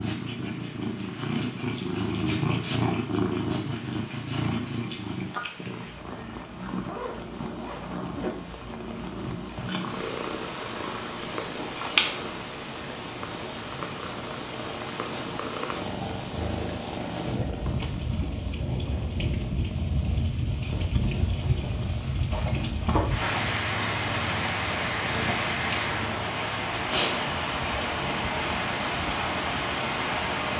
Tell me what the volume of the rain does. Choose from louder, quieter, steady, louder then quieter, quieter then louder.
louder.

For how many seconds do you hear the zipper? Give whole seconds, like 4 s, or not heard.
3 s.